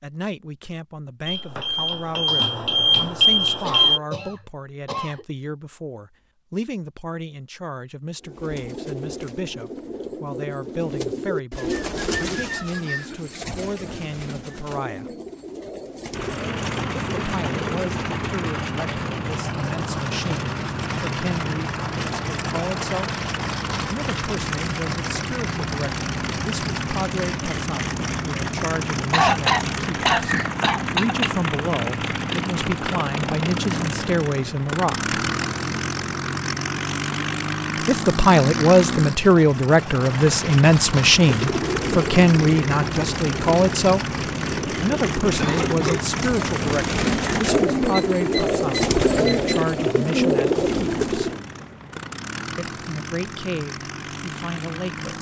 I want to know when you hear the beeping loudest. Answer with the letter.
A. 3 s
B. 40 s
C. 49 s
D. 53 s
A.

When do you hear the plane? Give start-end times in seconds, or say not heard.
16.1-55.1.